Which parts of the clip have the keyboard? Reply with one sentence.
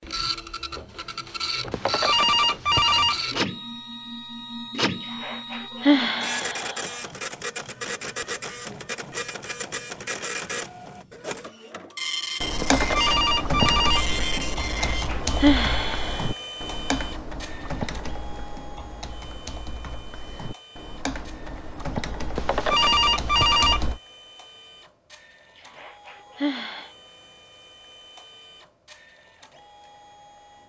The keyboard can be heard from 12.4 to 24.0 s.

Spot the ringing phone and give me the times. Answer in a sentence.
You can hear the ringing phone from 1.7 to 3.2 s, from 12.6 to 14.1 s and from 22.4 to 23.9 s.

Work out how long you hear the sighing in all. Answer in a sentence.
You can hear the sighing for 5 seconds altogether.